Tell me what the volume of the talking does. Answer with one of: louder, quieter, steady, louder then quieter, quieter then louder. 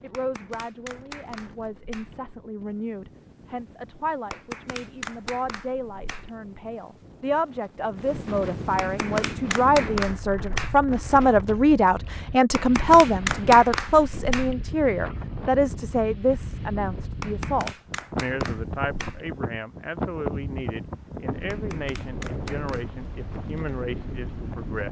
louder then quieter.